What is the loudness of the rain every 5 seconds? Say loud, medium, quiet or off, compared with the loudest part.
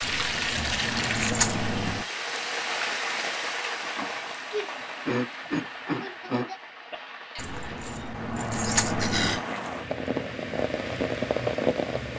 loud, medium, loud.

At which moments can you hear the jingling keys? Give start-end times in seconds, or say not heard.
0.0-2.0, 7.3-9.4.